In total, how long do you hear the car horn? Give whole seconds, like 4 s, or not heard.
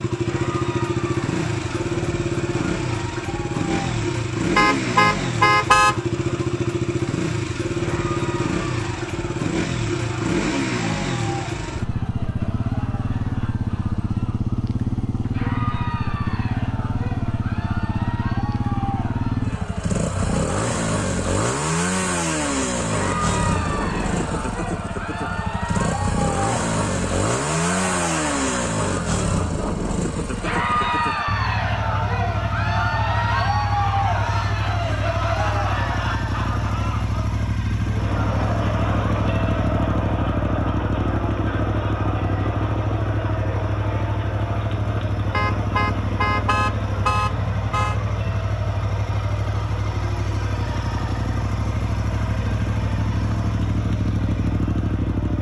4 s.